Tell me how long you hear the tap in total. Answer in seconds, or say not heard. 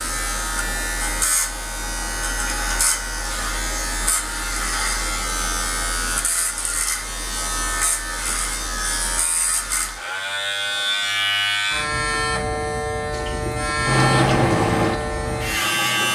3 s.